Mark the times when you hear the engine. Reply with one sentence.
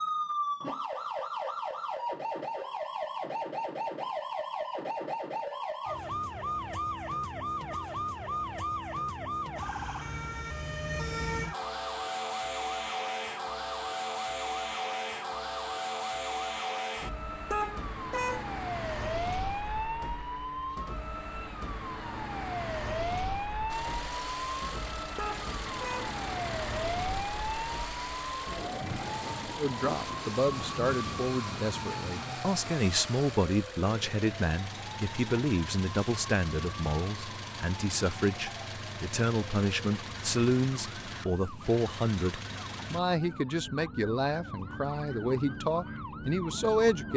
The engine can be heard from 23.6 to 43.0 s.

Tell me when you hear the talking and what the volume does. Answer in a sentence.
You can hear the talking from 29.6 to 47.1 s, at a steady volume.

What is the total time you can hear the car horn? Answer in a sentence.
You can hear the car horn for 2 seconds altogether.